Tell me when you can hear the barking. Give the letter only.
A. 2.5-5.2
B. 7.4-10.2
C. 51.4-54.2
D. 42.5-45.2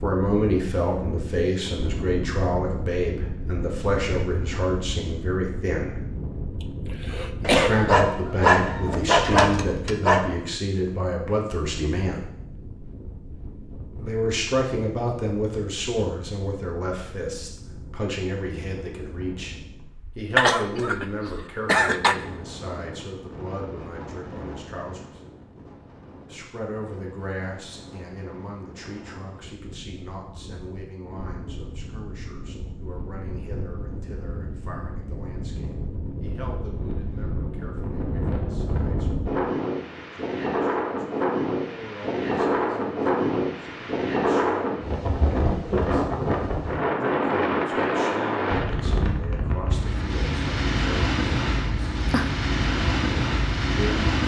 B.